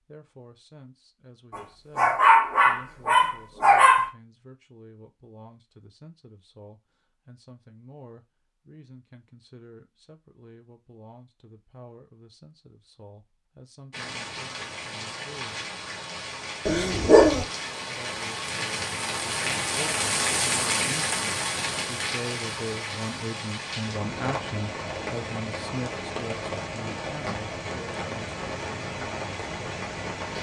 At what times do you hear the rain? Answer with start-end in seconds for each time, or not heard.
13.9-30.3.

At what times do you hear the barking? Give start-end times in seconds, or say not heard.
1.9-4.1, 16.6-17.4.